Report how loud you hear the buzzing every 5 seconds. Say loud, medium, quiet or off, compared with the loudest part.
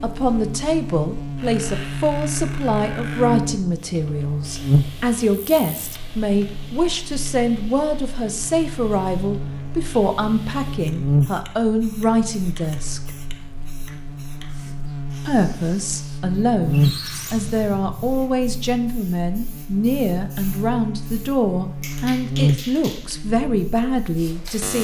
loud, medium, loud, loud, loud.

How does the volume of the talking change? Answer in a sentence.
The volume of the talking stays about the same.